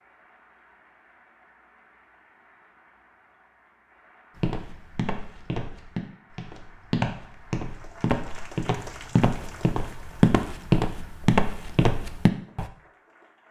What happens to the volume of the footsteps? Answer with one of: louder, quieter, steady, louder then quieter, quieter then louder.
louder.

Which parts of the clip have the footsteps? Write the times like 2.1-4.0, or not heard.
4.3-12.7.